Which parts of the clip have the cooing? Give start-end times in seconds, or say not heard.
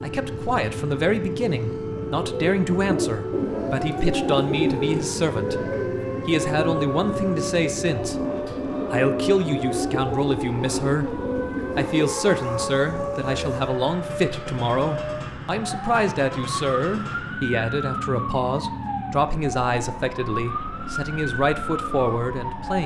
2.0-12.2.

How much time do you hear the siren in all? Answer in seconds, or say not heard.
23 s.